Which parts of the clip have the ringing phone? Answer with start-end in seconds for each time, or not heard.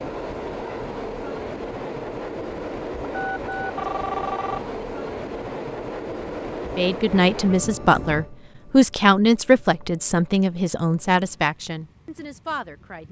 3.0-4.6.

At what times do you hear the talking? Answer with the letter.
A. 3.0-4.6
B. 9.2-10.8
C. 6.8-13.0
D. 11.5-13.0
C.